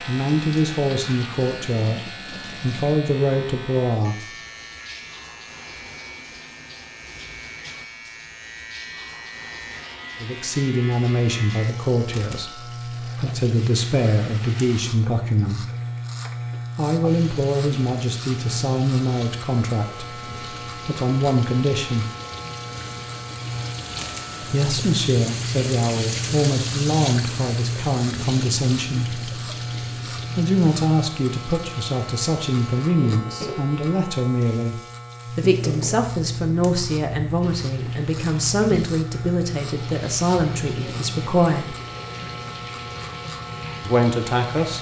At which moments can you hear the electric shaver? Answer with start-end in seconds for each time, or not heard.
0.0-44.7.